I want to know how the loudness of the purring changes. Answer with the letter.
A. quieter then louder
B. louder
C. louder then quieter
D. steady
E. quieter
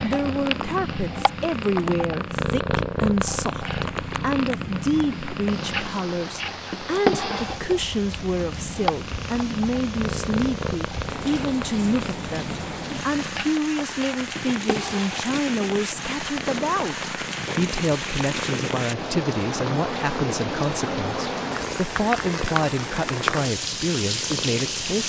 E.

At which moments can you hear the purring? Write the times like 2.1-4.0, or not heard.
0.0-25.0.